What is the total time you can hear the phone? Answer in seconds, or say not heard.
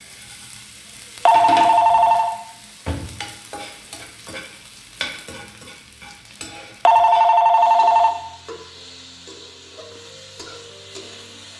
2 s.